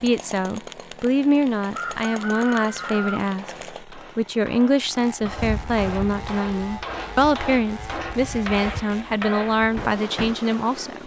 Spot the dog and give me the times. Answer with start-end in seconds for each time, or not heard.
not heard.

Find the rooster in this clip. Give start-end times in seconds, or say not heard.
1.6-3.2.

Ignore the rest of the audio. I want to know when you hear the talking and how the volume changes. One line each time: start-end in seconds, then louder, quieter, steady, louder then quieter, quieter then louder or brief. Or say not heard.
0.0-11.0 steady.